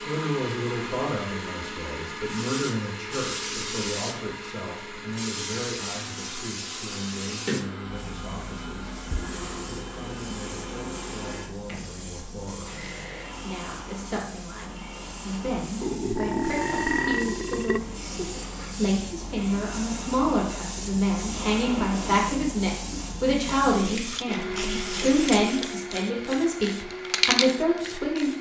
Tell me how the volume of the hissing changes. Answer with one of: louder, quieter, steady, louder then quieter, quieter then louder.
quieter then louder.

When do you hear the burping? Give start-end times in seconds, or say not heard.
15.8-17.8.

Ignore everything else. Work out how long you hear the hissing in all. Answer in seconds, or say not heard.
26 s.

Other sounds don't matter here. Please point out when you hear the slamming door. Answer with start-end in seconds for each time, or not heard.
not heard.